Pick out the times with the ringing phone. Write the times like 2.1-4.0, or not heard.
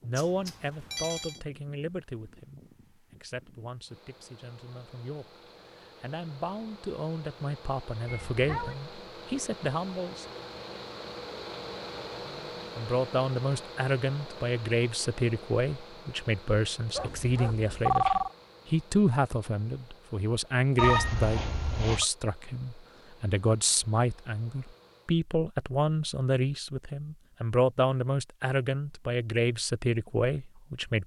0.1-1.4, 16.9-18.3, 20.8-22.1.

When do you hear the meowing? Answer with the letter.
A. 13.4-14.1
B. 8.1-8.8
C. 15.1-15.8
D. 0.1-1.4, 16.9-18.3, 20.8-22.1
B.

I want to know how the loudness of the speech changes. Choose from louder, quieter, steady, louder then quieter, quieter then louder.
louder.